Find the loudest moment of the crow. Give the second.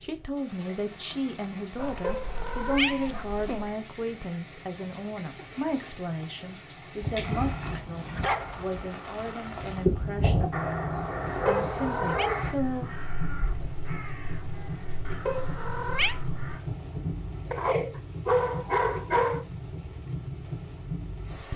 10 s.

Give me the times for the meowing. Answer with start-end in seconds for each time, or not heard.
2.0-3.6, 11.4-12.3, 15.2-16.2.